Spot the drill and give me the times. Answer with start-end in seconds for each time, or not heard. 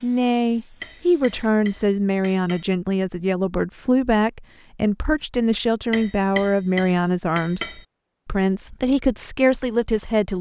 not heard.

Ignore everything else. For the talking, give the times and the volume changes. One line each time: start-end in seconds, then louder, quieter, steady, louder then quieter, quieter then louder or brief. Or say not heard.
0.0-10.3 steady.